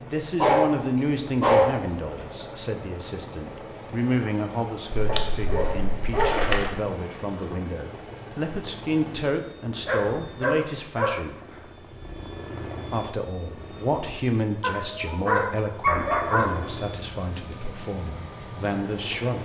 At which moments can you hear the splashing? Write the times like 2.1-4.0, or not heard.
5.0-6.8.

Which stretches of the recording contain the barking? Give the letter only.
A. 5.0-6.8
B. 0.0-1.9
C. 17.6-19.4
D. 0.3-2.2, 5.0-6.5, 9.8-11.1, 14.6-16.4
D.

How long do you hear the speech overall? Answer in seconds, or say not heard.
18 s.